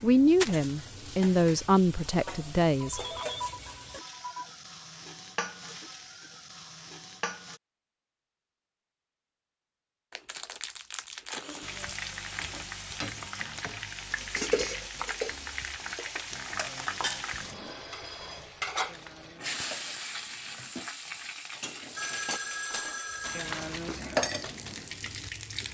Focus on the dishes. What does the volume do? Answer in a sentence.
The volume of the dishes goes down, then up.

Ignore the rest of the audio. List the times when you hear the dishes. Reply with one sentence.
The dishes can be heard from 14.1 to 24.9 s.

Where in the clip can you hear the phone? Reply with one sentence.
You can hear the phone from 2.8 to 4.5 s and from 21.9 to 23.6 s.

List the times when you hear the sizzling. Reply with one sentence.
The sizzling can be heard from 0.0 to 7.6 s and from 11.6 to 25.6 s.